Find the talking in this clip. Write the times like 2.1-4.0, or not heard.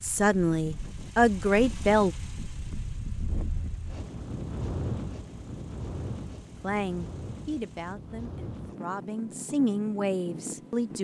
0.0-2.1, 6.6-10.9.